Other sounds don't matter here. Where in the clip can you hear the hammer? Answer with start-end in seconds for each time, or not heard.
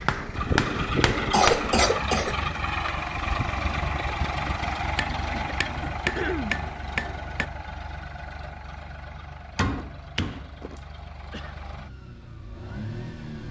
0.1-1.9, 5.0-7.5, 9.6-10.8.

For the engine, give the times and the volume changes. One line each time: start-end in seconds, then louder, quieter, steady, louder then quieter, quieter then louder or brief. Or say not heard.
0.0-13.4 quieter.